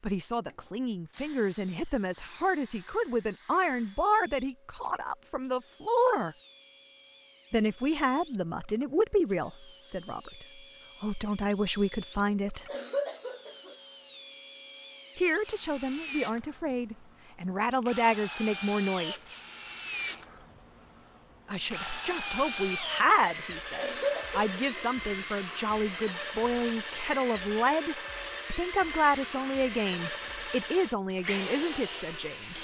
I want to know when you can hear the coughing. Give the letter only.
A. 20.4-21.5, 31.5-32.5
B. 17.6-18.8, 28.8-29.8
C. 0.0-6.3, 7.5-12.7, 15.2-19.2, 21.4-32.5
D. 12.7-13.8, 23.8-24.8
D.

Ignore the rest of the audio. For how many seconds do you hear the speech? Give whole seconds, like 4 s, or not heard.
27 s.